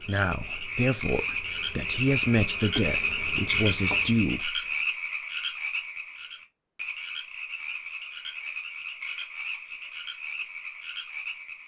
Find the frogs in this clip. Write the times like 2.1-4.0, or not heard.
0.0-11.6.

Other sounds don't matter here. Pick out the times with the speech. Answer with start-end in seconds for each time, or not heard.
0.0-4.6.